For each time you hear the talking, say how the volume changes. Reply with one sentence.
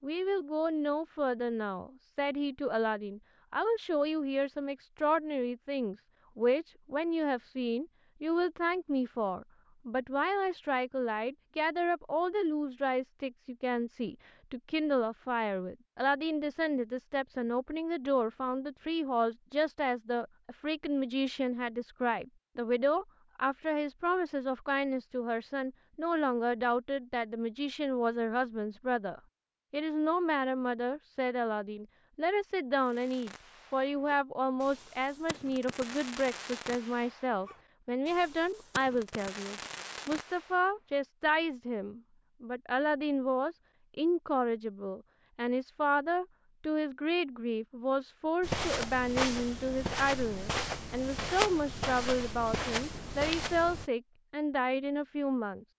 The talking can be heard from 0.0 to 55.6 s, at a steady volume.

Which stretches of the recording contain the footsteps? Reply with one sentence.
The footsteps can be heard from 48.4 to 53.9 s.